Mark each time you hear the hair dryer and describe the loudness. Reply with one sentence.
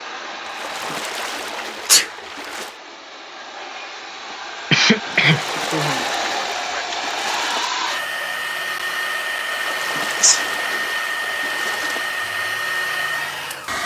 You can hear the hair dryer from 0.0 to 13.8 s, getting louder.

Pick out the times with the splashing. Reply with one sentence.
The splashing can be heard from 0.4 to 2.8 s, from 5.2 to 7.7 s and from 9.5 to 12.1 s.